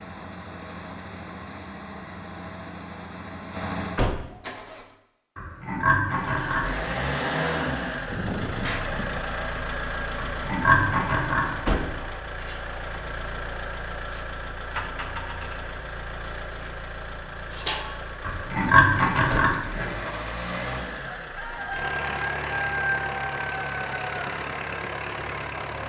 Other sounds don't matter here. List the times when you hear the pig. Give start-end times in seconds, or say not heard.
5.3-6.9, 10.2-11.8, 18.2-20.1.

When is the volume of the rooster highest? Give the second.
23 s.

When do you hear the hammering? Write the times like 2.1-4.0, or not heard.
not heard.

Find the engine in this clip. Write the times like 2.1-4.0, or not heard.
0.0-4.8, 6.0-25.8.